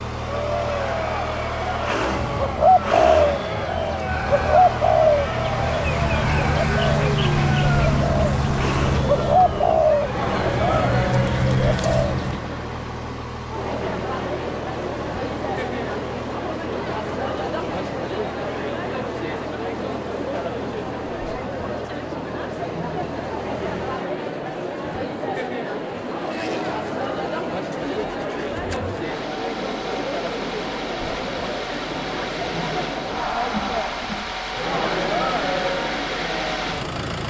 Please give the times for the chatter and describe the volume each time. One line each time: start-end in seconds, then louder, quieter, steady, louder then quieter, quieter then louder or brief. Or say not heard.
0.1-37.2 steady.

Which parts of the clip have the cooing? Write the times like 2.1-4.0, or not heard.
2.1-12.4.